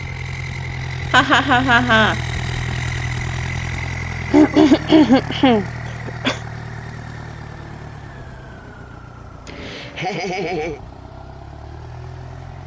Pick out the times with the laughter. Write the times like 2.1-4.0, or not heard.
1.1-2.2, 4.3-6.4, 9.4-10.8.